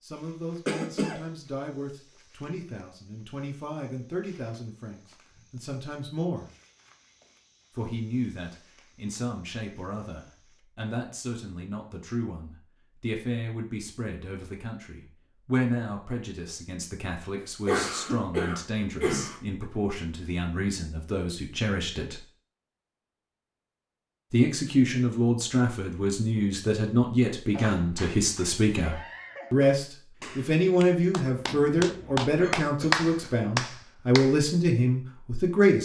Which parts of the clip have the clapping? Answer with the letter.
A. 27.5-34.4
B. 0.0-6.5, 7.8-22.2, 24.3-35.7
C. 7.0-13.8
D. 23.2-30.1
A.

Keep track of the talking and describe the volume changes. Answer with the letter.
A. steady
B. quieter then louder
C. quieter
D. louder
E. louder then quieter
D.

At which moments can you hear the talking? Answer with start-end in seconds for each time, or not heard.
0.0-6.5, 7.8-22.2, 24.3-35.7.